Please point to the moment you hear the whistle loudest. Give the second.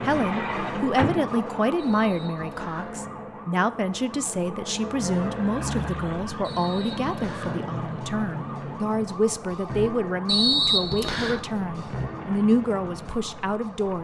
11 s.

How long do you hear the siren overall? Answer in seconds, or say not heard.
14 s.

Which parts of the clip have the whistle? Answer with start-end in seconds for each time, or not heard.
1.8-2.9, 6.4-7.5, 10.2-11.4.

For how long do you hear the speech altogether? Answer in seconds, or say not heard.
14 s.